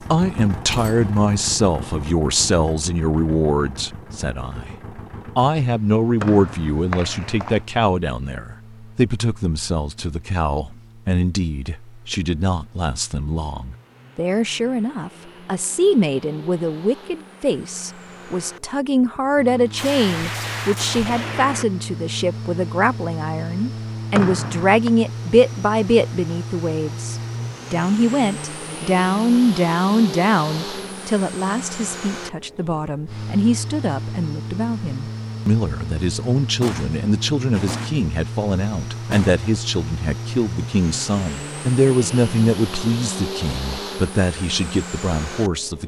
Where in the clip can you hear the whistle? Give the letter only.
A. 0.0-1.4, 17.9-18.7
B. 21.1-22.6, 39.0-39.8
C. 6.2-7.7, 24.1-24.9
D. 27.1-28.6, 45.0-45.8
C.